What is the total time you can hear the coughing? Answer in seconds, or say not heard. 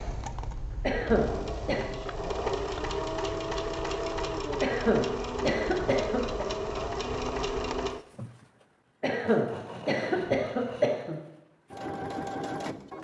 5 s.